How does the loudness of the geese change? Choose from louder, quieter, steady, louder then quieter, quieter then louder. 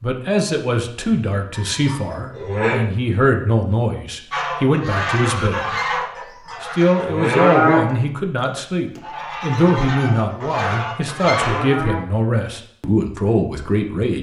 quieter then louder.